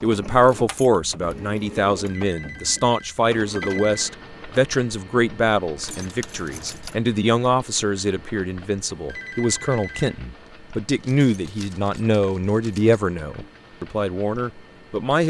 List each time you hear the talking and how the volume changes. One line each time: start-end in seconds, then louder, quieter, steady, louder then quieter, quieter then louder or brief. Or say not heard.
0.0-15.2 steady.